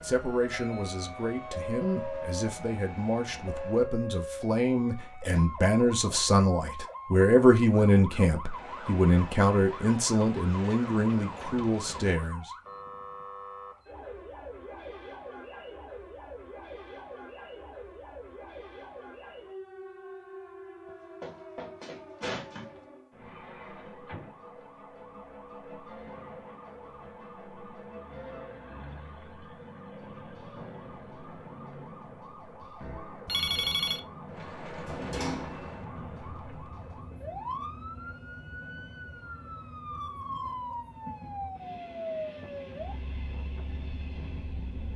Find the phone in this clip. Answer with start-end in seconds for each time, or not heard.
33.2-34.0.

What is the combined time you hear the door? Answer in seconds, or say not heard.
3 s.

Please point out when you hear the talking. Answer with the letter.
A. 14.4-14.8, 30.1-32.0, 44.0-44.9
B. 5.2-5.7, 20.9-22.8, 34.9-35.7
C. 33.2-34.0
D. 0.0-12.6
D.